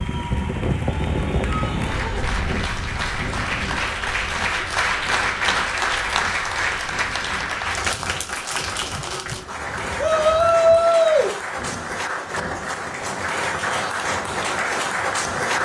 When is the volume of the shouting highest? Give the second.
11 s.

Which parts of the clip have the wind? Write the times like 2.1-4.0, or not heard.
0.0-15.6.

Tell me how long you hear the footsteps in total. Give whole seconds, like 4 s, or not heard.
not heard.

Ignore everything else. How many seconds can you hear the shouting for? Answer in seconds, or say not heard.
2 s.